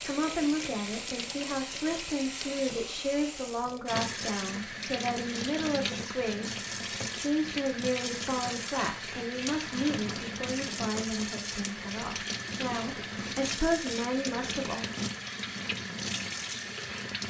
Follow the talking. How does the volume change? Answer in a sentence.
The volume of the talking stays about the same.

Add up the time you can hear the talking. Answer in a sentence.
The talking can be heard for 15 seconds in total.